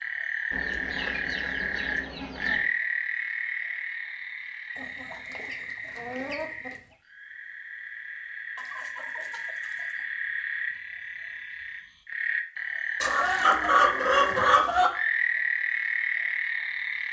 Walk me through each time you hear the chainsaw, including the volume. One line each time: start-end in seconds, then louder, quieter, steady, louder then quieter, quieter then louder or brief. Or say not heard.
not heard.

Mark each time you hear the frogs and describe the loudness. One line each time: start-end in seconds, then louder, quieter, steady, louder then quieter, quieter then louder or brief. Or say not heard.
0.0-17.0 quieter then louder.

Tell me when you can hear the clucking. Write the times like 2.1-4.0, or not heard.
0.5-2.7, 4.8-7.0, 8.6-10.0, 13.0-14.9.